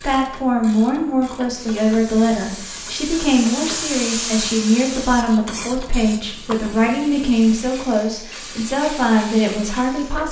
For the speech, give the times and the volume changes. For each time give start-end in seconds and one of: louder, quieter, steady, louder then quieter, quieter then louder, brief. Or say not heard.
0.0-10.2 steady.